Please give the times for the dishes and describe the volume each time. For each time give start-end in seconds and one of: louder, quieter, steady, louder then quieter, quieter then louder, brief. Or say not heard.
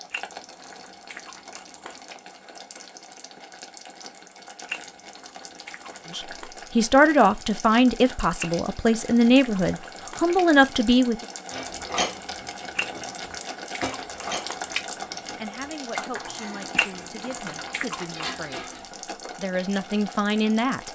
11.5-18.8 quieter then louder.